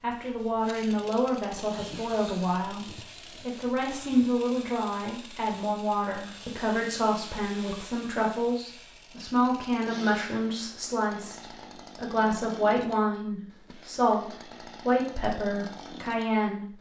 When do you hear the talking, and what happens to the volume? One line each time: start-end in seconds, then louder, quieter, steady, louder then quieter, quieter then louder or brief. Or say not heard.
0.0-16.7 steady.